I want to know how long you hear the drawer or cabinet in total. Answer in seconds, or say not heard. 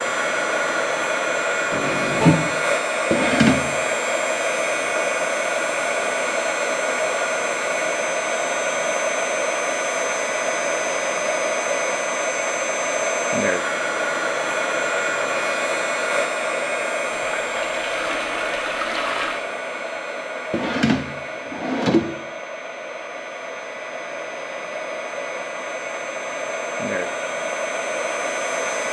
2 s.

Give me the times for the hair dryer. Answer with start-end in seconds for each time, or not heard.
0.0-28.8.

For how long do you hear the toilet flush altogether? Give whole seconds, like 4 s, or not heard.
3 s.